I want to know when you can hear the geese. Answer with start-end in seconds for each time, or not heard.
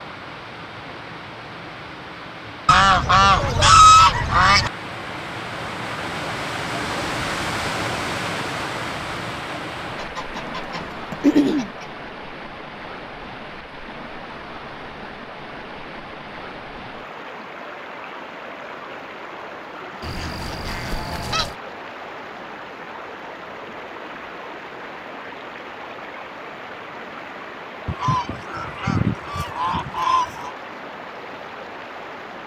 2.6-4.7, 9.9-11.8, 20.0-21.6, 27.9-30.5.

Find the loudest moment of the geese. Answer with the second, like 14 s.
4 s.